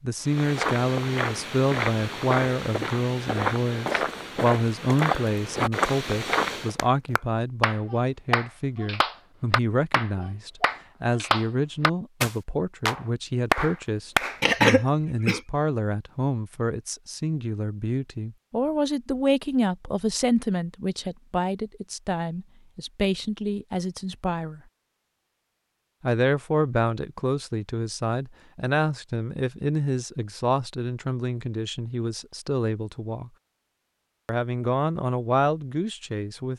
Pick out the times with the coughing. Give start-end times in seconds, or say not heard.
14.4-15.4.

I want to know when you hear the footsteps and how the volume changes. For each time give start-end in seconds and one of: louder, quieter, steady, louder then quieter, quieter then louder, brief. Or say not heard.
0.2-6.8 steady.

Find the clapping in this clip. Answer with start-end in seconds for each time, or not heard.
6.8-14.4.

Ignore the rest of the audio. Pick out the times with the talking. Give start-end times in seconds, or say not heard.
0.0-24.6, 26.0-33.3, 34.2-36.5.